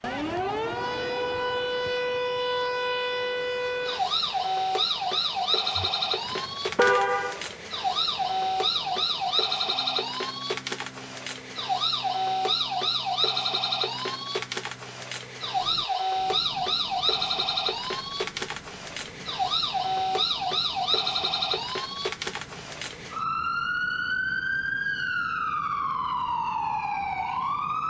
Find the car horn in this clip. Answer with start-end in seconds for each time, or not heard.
5.8-7.5.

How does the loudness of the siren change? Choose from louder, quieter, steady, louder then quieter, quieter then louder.
steady.